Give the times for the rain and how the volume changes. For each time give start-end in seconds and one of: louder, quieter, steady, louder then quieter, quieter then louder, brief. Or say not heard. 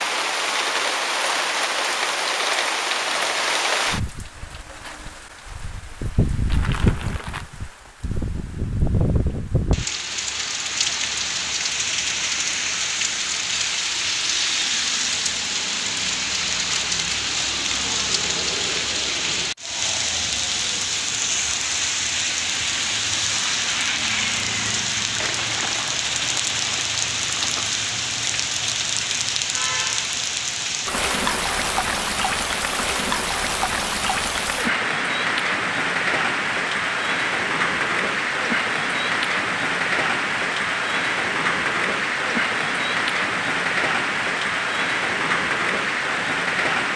0.0-46.9 steady.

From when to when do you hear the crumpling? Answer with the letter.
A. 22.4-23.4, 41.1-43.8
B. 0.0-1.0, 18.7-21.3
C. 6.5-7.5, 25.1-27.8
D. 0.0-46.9
C.